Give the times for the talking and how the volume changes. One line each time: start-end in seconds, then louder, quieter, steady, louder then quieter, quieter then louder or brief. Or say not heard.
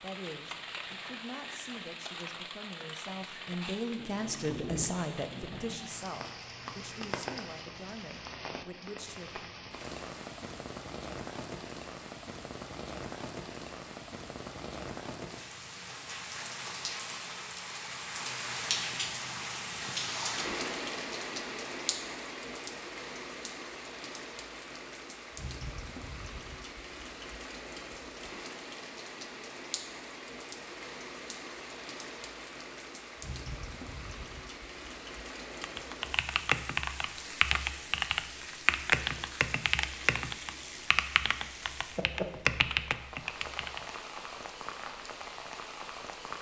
0.0-9.6 louder then quieter.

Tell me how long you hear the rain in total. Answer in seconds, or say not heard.
46 s.